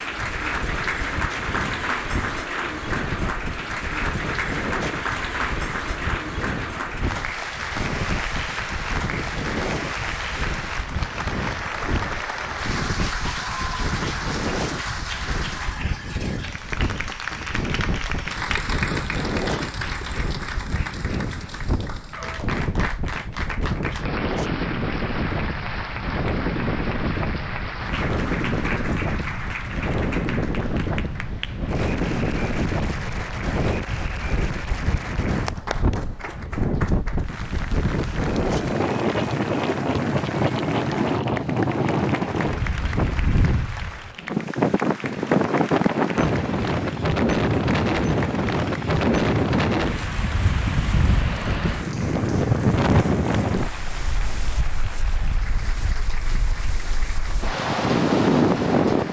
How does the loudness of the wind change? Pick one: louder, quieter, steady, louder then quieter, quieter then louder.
louder.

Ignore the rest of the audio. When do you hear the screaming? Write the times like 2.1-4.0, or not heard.
not heard.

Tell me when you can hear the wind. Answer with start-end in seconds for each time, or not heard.
0.0-59.0.